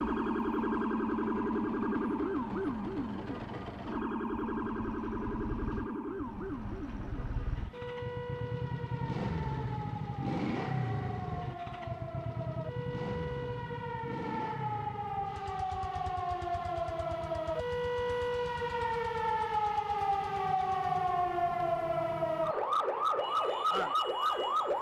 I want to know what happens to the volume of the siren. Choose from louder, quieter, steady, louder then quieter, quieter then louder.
quieter then louder.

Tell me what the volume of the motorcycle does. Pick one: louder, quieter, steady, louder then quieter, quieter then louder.
louder then quieter.